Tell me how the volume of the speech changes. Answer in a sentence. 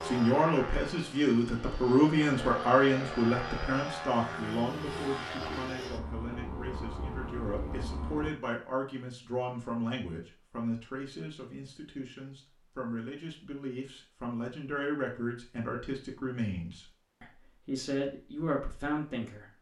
The loudness of the speech goes down.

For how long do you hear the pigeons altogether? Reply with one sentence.
The pigeons can't be heard in this clip.